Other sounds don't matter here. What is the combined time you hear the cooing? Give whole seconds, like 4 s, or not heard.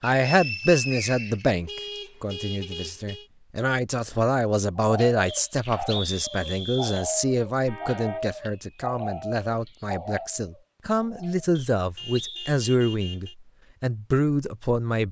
7 s.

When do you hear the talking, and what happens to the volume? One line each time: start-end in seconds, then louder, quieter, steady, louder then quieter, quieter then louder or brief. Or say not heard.
0.0-15.0 steady.